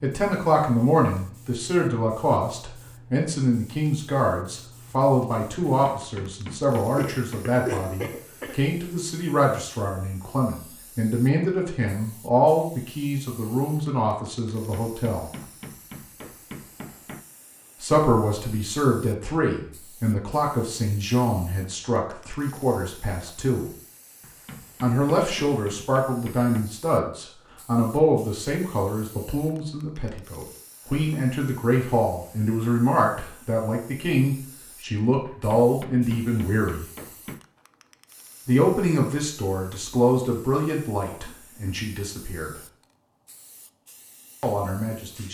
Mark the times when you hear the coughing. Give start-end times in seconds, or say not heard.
7.0-8.7.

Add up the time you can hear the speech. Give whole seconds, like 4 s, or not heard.
38 s.